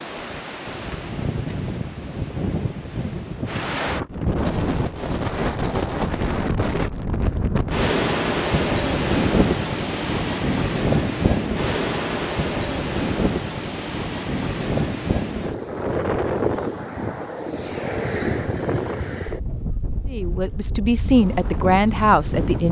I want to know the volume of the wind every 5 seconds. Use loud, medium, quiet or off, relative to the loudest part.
medium, loud, loud, loud, medium.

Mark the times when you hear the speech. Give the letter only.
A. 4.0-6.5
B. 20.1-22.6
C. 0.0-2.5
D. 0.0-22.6
B.